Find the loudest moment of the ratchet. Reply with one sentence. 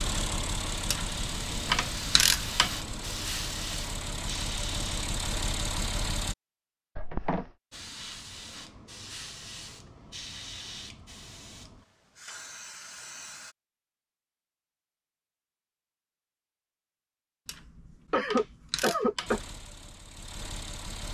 The volume of the ratchet peaks at 2 seconds.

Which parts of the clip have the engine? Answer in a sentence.
The engine can be heard from 0.0 to 6.3 s and from 19.2 to 21.1 s.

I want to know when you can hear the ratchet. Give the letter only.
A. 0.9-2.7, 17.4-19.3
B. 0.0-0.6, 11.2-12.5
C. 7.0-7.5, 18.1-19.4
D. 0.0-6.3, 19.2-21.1
A.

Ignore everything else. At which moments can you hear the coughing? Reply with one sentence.
You can hear the coughing from 7.0 to 7.5 s and from 18.1 to 19.4 s.